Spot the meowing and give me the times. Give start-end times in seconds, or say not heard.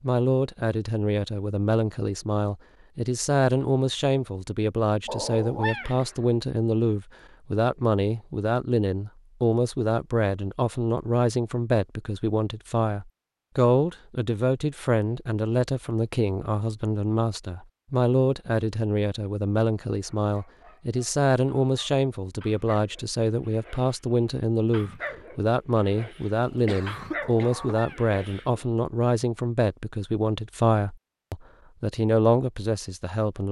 5.0-6.0, 27.2-28.1.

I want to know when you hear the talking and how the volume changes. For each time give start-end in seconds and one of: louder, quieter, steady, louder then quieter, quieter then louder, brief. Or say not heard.
0.0-33.4 steady.